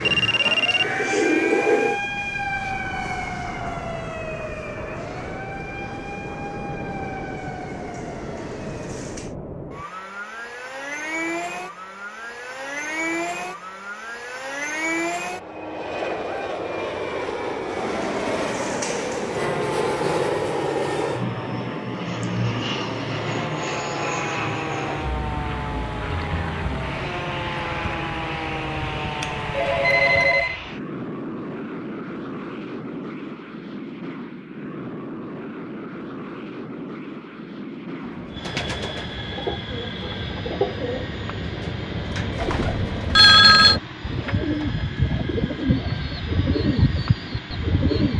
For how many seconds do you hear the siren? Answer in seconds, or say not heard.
22 s.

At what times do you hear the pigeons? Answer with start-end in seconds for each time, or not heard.
0.0-1.9, 38.0-48.1.